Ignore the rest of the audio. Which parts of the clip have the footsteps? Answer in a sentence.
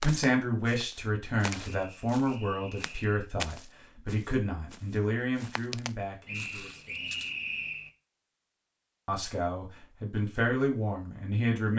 The footsteps can be heard from 0.0 to 7.3 s.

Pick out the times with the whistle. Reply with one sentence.
The whistle can be heard from 1.6 to 3.1 s and from 6.2 to 7.9 s.